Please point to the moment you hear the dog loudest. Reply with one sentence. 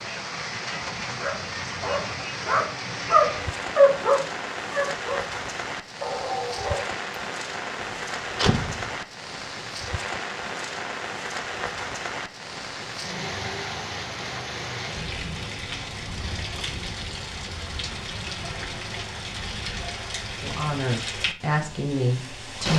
The loudest moment of the dog is at 4 seconds.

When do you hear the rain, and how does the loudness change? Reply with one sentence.
The rain can be heard from 0.0 to 22.7 s, at a steady volume.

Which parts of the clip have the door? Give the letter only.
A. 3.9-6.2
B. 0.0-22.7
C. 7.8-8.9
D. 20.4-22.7
C.